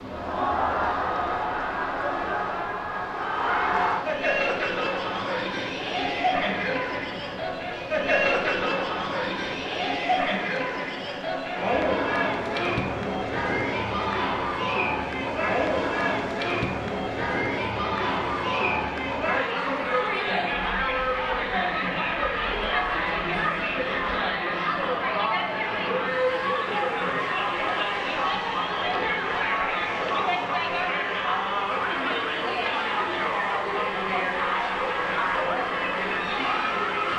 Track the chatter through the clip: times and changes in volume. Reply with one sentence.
The chatter can be heard from 0.0 to 37.1 s, at a steady volume.